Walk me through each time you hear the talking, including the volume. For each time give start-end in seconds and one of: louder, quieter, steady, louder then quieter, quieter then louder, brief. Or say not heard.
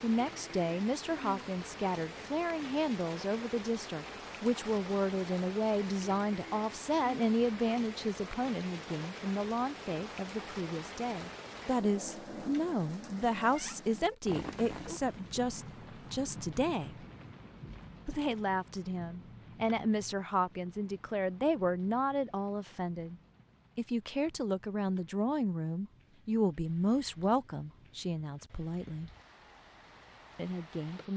0.0-16.9 steady
18.1-29.1 steady
30.4-31.1 brief.